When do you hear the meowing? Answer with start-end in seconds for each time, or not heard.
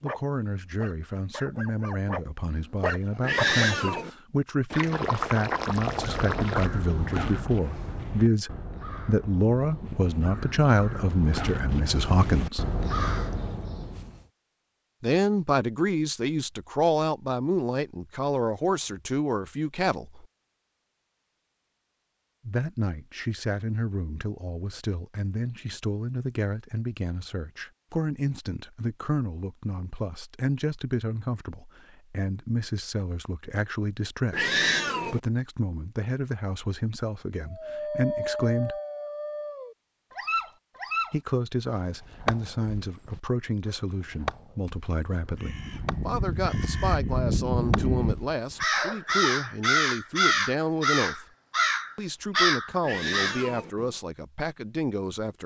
3.2-4.1, 34.3-35.2, 52.8-53.7.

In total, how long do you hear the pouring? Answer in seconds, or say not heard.
2 s.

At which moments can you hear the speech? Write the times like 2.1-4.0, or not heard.
0.0-12.7, 15.0-20.2, 22.4-38.8, 41.1-51.2, 52.0-55.4.